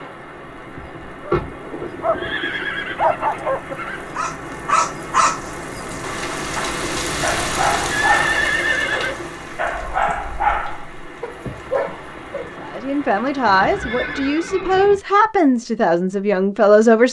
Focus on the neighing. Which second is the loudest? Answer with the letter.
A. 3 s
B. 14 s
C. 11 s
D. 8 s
D.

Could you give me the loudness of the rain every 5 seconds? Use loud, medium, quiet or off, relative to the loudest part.
medium, loud, medium, off.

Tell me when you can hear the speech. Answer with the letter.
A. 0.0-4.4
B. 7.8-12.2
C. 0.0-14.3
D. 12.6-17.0
D.